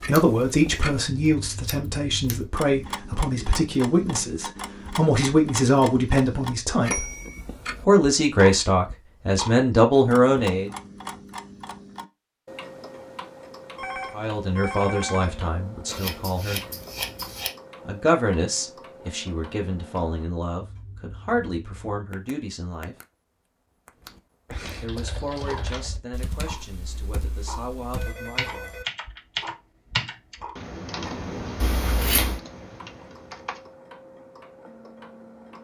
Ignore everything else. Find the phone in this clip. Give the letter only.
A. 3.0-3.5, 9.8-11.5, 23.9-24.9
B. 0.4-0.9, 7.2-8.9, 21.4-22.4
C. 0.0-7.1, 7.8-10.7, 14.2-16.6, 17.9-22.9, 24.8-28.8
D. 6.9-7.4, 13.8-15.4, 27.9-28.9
D.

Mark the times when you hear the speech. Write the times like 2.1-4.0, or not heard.
0.0-7.1, 7.8-10.7, 14.2-16.6, 17.9-22.9, 24.8-28.8.